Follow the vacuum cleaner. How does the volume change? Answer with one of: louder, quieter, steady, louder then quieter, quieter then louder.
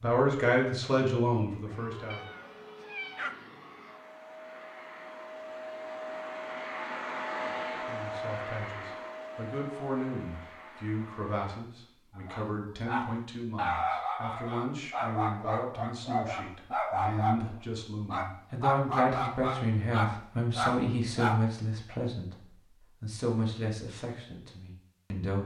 louder then quieter.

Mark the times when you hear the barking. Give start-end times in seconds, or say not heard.
12.2-21.9.